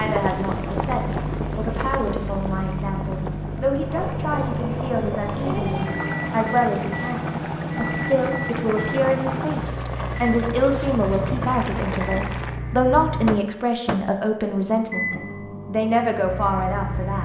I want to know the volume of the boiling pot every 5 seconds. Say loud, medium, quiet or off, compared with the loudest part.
loud, loud, loud, off.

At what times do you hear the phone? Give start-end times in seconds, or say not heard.
5.2-6.0.